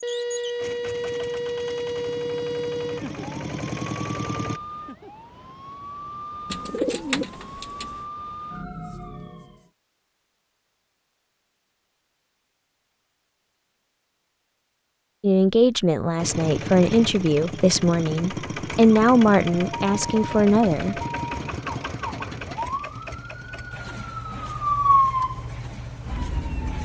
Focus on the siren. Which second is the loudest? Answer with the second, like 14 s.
25 s.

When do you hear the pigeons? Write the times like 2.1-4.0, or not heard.
6.5-8.1.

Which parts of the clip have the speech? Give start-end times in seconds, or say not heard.
15.2-21.0.